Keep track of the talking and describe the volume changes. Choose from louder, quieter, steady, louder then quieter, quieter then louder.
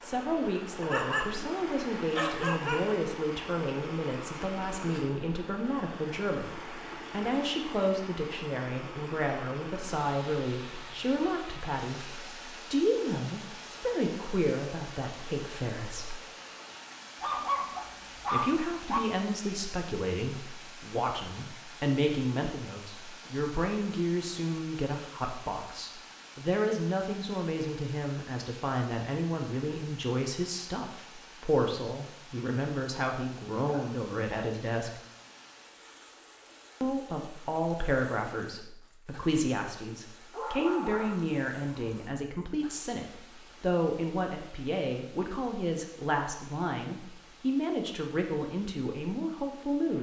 steady.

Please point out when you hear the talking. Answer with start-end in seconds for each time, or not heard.
0.0-16.1, 18.3-35.0, 36.8-49.9.